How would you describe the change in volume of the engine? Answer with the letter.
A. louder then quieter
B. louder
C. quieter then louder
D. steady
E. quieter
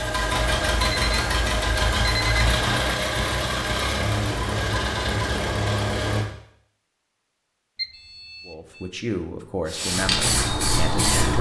D.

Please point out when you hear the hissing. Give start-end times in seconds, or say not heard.
9.7-11.3.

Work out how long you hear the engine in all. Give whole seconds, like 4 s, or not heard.
6 s.